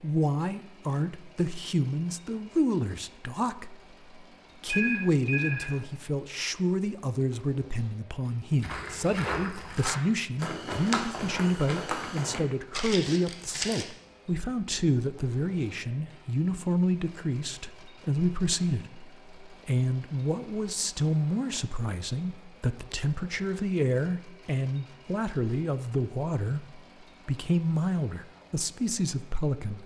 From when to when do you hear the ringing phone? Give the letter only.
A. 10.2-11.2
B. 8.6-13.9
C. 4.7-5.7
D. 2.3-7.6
C.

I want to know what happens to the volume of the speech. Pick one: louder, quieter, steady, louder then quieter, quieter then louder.
steady.